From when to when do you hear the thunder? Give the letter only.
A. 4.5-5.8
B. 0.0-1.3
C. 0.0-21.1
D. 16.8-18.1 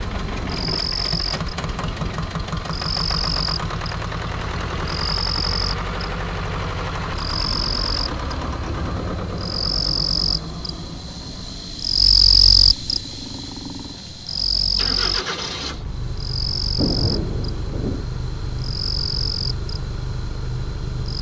D.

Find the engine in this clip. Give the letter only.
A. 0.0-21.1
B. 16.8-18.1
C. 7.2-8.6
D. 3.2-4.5
A.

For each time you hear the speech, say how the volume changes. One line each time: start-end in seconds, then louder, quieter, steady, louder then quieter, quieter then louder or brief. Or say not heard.
not heard.